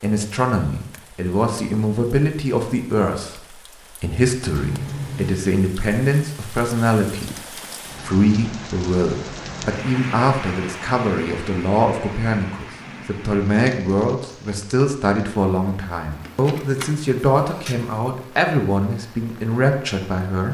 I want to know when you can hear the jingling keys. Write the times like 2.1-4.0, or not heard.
4.5-5.4, 16.2-18.1.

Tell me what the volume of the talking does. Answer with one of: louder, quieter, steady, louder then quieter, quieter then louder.
steady.